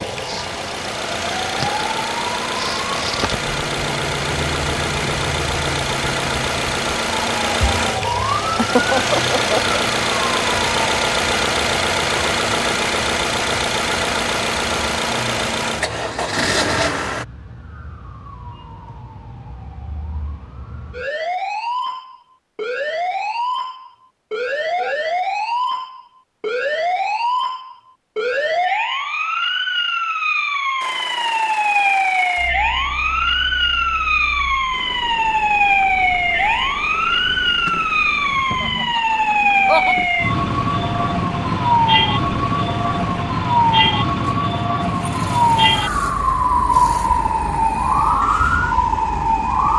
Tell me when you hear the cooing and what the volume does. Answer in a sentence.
You can't hear the cooing here.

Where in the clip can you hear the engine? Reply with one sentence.
The engine can be heard from 0.0 to 17.2 s and from 30.8 to 49.7 s.